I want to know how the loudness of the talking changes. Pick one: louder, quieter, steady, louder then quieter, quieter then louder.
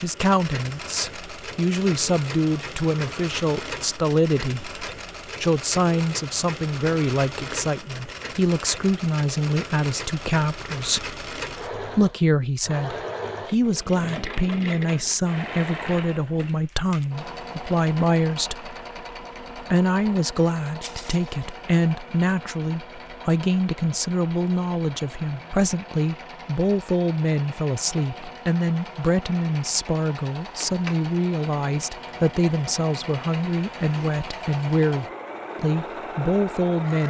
steady.